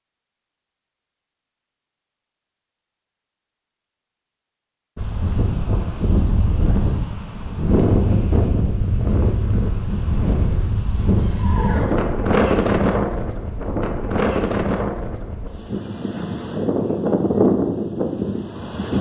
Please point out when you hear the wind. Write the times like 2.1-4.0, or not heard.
5.0-18.9.